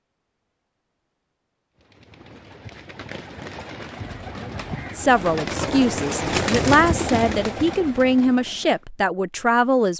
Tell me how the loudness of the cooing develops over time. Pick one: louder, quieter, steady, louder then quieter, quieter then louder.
louder then quieter.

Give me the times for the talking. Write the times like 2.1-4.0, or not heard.
5.0-9.9.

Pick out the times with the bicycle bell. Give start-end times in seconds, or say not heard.
not heard.